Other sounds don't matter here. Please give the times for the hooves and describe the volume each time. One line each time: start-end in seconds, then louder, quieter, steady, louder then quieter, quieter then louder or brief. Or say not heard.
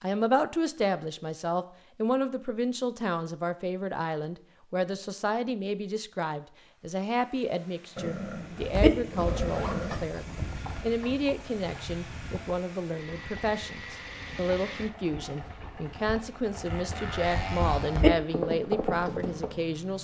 8.6-19.6 quieter then louder.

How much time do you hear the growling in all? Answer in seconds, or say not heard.
2 s.